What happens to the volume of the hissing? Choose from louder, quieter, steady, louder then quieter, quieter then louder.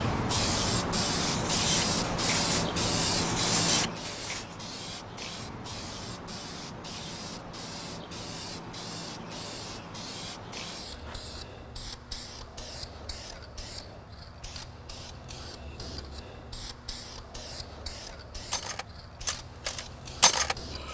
quieter.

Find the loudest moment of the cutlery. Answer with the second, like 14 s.
20 s.